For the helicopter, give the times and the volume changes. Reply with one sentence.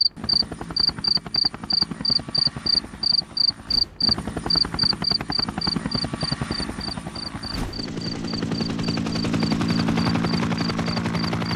The helicopter can be heard from 0.0 to 11.5 s, getting louder.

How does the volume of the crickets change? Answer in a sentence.
The loudness of the crickets goes down.